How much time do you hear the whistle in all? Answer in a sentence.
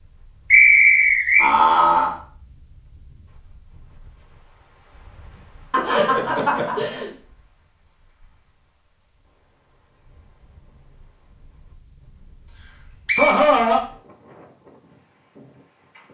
The whistle can be heard for 2 seconds in total.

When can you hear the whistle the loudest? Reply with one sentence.
The volume of the whistle peaks at 1 second.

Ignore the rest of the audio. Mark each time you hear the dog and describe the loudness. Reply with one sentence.
The dog can't be heard in this clip.